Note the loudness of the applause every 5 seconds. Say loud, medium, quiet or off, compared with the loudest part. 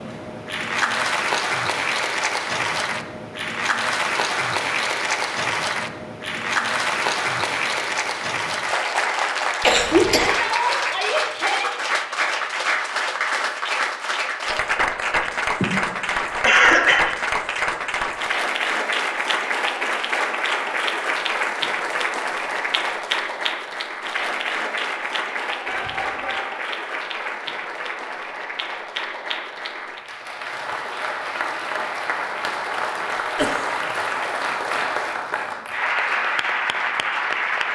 loud, loud, loud, loud, loud, medium, loud, loud.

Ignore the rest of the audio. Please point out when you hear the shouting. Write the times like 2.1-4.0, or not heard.
10.0-11.7, 25.6-26.4.